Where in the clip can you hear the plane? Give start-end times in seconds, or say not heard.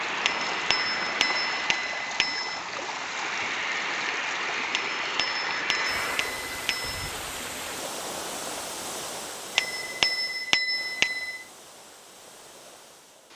0.0-6.4.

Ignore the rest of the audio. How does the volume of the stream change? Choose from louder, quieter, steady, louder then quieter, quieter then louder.
quieter.